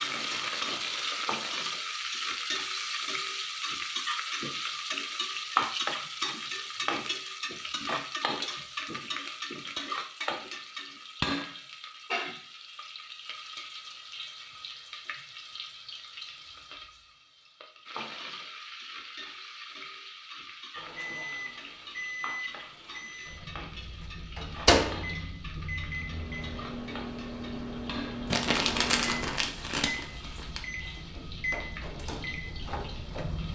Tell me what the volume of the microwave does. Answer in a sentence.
The volume of the microwave goes up, then down.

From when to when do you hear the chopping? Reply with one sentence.
The chopping can't be heard in this clip.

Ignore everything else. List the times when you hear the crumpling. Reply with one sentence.
You can hear the crumpling from 28.3 to 30.6 s.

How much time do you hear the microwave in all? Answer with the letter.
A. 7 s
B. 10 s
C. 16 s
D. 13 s
D.